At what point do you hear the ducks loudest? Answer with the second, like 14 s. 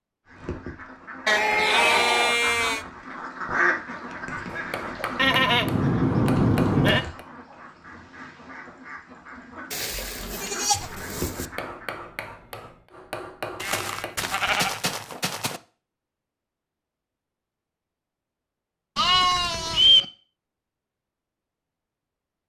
4 s.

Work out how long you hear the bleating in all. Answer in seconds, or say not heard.
8 s.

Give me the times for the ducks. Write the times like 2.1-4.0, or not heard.
0.2-11.9.